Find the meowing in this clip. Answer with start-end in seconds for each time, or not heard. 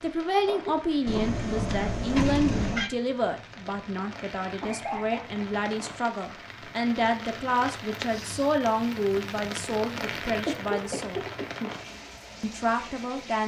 1.1-2.9.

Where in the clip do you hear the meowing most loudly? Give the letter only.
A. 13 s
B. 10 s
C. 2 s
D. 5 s
C.